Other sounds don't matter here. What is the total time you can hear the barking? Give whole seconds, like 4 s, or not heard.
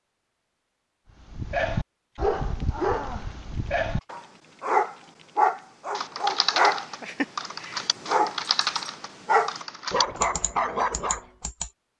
10 s.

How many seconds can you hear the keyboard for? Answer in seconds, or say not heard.
6 s.